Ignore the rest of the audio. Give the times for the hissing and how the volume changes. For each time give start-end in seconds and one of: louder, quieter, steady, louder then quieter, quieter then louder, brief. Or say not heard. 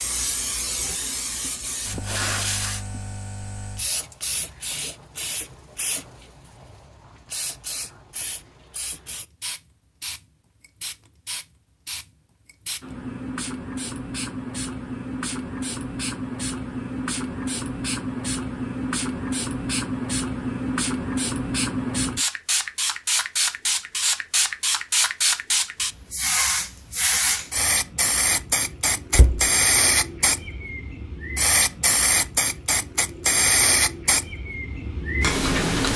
0.0-35.9 louder.